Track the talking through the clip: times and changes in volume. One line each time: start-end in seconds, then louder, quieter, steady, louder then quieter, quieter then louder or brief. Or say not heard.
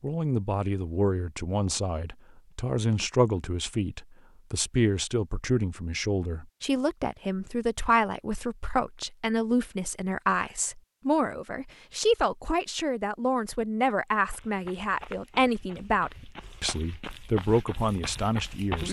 0.0-18.8 steady.